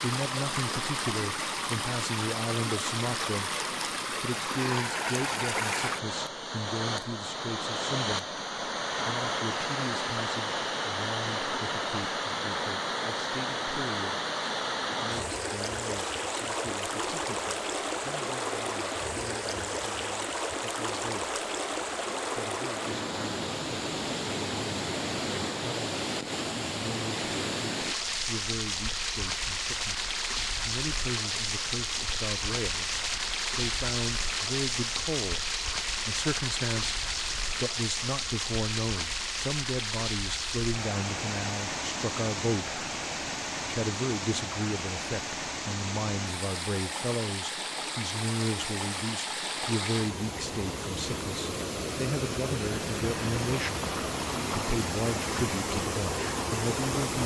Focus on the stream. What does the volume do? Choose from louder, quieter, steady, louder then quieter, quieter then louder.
steady.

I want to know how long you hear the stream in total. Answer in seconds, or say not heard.
57 s.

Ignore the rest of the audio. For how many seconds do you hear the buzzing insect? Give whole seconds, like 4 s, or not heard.
not heard.